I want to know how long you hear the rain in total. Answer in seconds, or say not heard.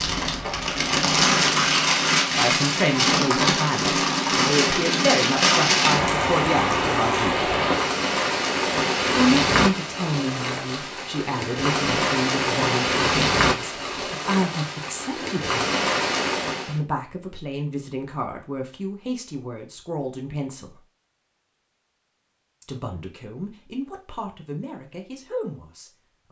17 s.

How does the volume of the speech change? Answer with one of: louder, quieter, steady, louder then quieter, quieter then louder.
quieter.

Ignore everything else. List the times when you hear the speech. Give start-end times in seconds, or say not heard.
2.2-7.5, 9.1-15.7, 16.6-20.8, 22.6-26.2.